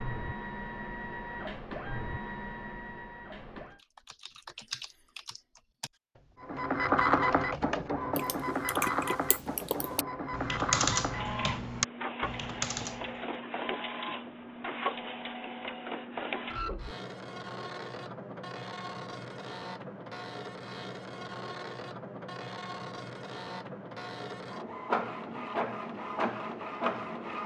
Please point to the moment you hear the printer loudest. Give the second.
7 s.